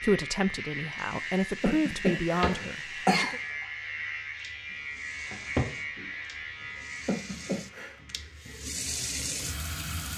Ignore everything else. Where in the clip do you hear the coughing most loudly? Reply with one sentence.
The loudest moment of the coughing is at 3 seconds.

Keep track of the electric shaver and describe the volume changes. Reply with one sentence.
The volume of the electric shaver goes down.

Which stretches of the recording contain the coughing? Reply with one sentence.
The coughing can be heard from 1.6 to 3.4 s and from 7.0 to 8.0 s.